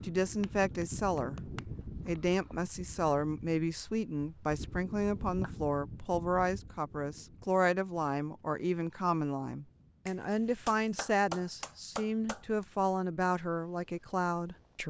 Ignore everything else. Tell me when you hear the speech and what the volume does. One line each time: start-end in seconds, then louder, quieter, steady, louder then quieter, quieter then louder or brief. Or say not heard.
0.0-14.8 steady.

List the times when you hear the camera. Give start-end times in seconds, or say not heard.
not heard.